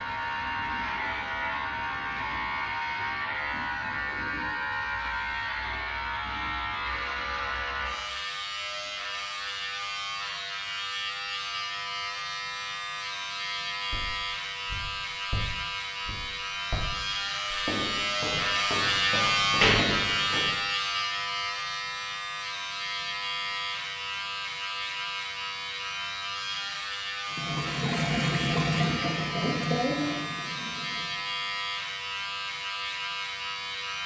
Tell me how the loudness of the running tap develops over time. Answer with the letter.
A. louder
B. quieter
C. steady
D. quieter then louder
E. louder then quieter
B.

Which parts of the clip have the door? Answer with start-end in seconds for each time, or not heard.
19.1-20.4.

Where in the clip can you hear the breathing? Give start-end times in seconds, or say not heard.
not heard.